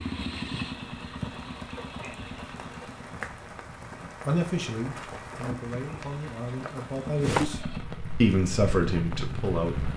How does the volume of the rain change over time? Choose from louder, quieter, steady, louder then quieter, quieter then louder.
louder then quieter.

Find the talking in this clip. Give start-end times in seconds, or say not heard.
4.0-7.6, 8.2-9.9.